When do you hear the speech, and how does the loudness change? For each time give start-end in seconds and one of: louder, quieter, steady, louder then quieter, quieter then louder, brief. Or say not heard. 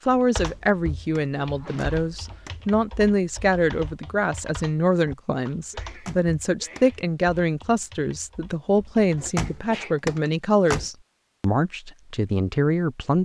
0.1-13.1 steady.